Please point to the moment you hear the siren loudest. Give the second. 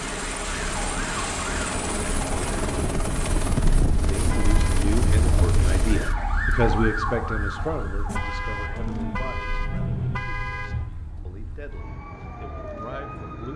7 s.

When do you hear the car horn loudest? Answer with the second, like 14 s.
10 s.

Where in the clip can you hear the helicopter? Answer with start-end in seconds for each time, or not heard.
0.0-6.2.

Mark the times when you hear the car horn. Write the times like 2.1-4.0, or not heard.
4.2-4.8, 8.1-10.8.